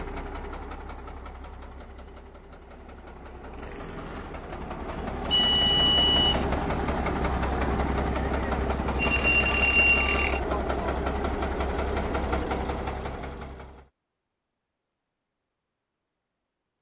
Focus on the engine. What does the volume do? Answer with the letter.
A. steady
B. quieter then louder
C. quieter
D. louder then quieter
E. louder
E.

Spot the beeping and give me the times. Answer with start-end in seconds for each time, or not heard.
5.2-6.5, 8.9-10.4.